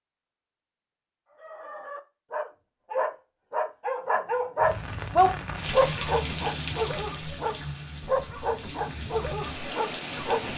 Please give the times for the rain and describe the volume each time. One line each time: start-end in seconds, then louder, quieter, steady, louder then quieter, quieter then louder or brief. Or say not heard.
4.6-10.5 quieter then louder.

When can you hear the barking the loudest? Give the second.
5 s.